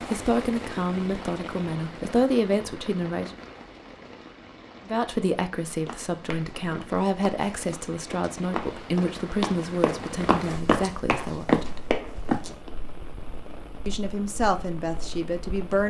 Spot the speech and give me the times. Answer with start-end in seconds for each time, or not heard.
0.0-3.4, 4.8-11.8, 13.8-15.8.